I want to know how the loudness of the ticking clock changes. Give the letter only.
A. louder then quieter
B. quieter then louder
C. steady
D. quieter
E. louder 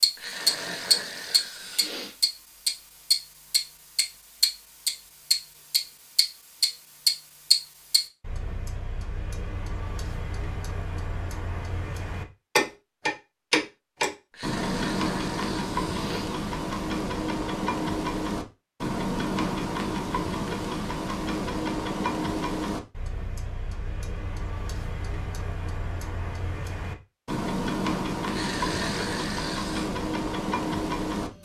D.